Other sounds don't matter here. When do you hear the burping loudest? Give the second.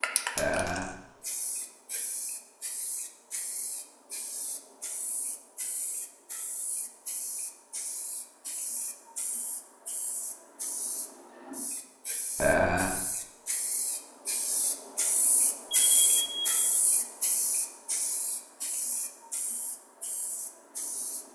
13 s.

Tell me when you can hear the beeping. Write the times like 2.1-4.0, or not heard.
15.7-16.6.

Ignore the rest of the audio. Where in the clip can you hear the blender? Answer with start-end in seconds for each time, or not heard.
not heard.